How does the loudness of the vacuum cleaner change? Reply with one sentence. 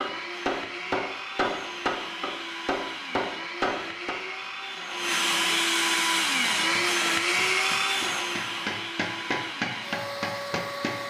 The loudness of the vacuum cleaner goes up, then down.